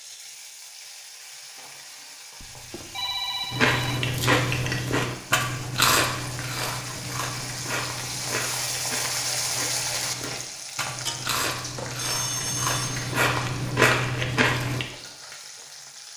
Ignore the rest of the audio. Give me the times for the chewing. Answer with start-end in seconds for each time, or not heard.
3.5-14.8.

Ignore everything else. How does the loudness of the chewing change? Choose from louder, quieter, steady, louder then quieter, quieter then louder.
quieter then louder.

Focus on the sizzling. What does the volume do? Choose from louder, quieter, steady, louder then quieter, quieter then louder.
louder then quieter.